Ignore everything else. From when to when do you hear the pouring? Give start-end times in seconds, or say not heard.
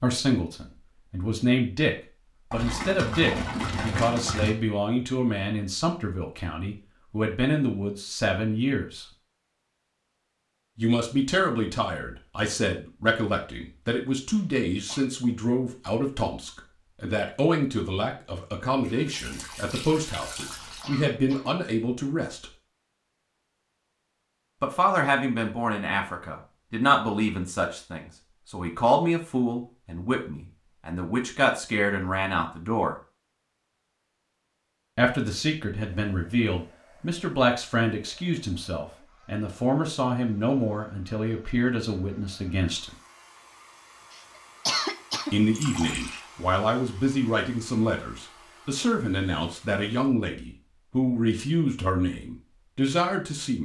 2.5-4.5, 18.8-20.9, 45.5-46.2.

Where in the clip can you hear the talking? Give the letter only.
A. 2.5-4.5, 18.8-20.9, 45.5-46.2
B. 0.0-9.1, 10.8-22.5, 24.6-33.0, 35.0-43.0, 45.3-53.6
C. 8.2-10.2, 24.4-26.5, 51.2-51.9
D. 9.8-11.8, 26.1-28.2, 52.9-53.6
B.